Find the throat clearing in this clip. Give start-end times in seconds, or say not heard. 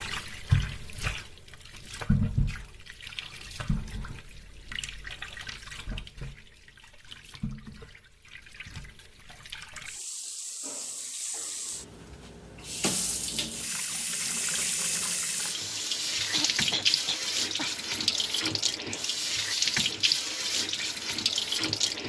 16.3-17.8.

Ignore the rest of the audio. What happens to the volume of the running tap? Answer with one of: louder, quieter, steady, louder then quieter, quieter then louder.
quieter then louder.